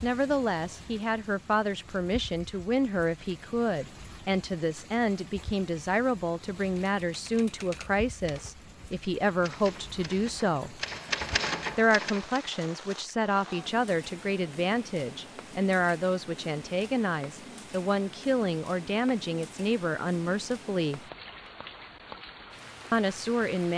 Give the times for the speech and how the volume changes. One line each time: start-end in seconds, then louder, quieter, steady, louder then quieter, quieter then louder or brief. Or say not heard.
0.0-10.8 steady
11.8-21.0 steady
22.9-23.7 brief.